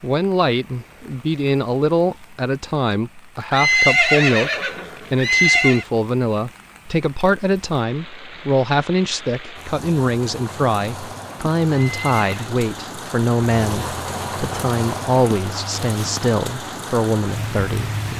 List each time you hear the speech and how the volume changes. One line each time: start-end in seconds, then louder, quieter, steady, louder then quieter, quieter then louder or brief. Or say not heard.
0.0-18.1 steady.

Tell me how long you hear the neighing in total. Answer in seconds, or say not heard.
3 s.